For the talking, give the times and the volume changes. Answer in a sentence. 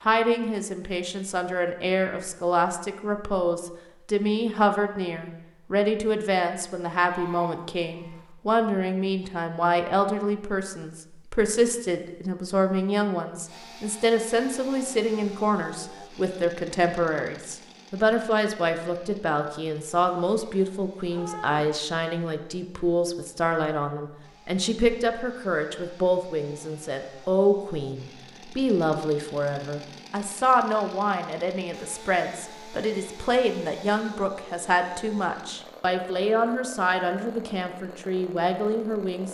You can hear the talking from 0.0 to 39.2 s, at a steady volume.